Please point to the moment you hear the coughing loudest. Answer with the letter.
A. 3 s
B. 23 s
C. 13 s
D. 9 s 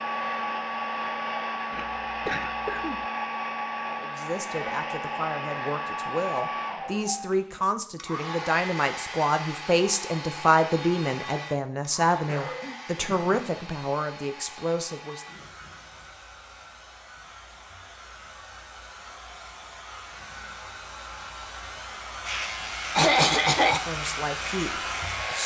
B.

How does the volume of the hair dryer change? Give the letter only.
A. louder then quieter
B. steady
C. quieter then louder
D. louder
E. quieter
C.